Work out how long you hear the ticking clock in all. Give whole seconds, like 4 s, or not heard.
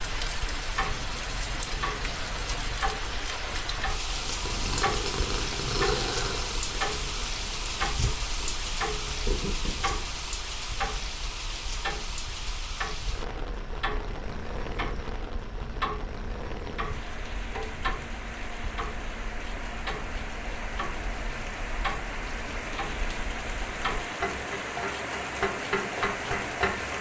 27 s.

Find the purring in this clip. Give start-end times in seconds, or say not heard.
4.0-10.0.